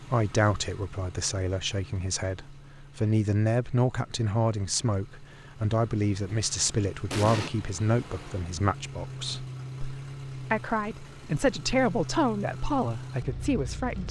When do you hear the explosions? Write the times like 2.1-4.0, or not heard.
7.1-7.5.